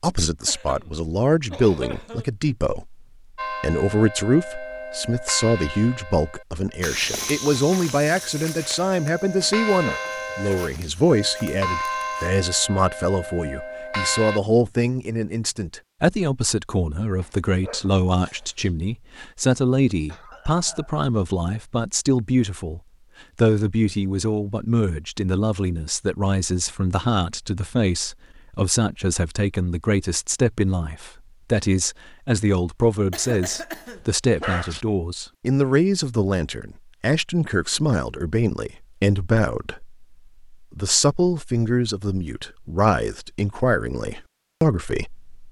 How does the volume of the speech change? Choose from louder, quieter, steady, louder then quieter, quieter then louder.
steady.